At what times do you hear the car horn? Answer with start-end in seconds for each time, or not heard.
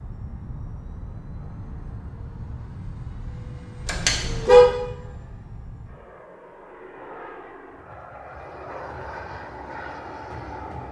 3.9-4.7.